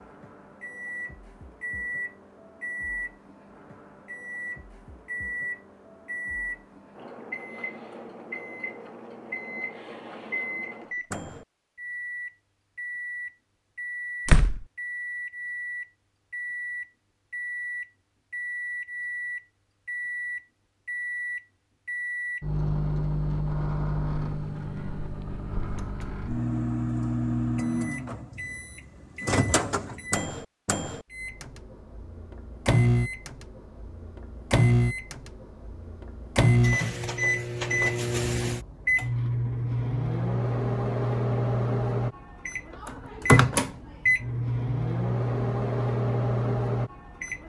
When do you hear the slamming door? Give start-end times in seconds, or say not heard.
14.2-14.7.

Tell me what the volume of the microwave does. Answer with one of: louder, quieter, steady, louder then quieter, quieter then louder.
louder.